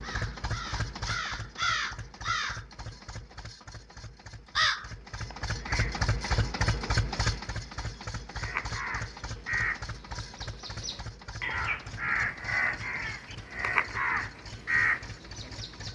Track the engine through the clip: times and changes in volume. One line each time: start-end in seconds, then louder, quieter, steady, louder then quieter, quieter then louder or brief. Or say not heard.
0.0-15.9 louder then quieter.